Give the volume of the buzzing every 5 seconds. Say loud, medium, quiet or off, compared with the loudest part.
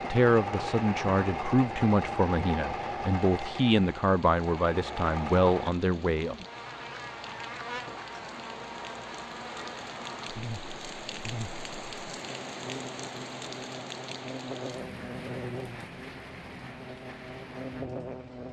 off, loud, loud, loud.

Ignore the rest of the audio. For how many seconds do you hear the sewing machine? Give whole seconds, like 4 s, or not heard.
6 s.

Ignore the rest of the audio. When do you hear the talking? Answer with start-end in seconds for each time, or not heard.
0.0-6.3.